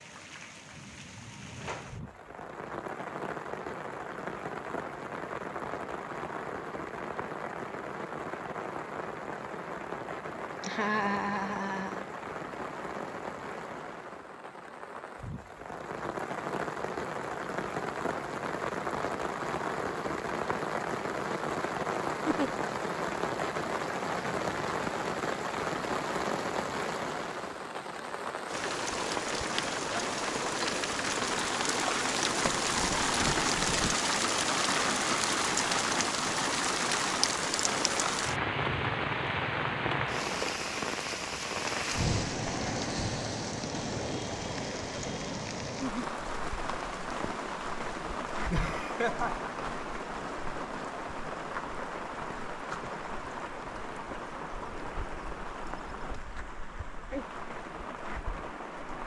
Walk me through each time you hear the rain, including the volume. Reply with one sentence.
You can hear the rain from 0.0 to 59.0 s, getting louder then quieter.